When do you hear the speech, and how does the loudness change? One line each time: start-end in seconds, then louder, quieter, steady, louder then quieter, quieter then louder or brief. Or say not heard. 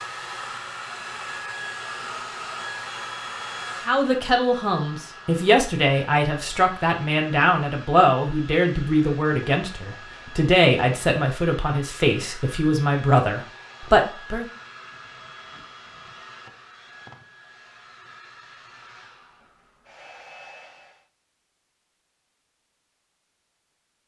3.9-14.4 steady.